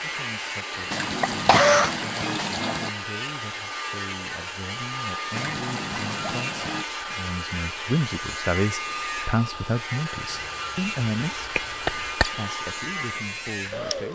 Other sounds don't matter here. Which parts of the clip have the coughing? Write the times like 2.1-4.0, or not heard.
0.7-1.9, 11.6-12.3.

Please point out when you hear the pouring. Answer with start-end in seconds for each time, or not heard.
0.9-2.9, 5.3-6.8, 10.3-12.2.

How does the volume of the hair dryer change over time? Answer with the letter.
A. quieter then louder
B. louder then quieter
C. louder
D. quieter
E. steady
E.